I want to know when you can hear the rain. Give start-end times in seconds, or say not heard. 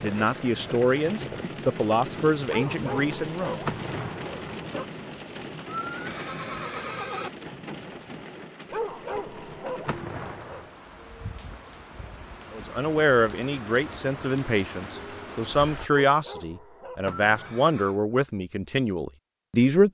0.0-15.9.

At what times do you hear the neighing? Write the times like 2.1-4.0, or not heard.
5.7-7.3, 17.1-18.0.